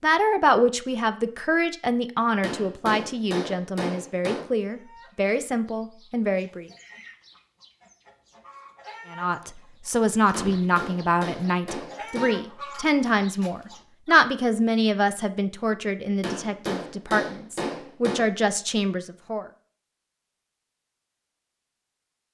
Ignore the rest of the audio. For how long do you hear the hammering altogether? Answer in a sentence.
The hammering can be heard for 6 seconds in total.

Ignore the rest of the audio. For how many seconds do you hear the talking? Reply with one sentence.
You can hear the talking for 17 seconds altogether.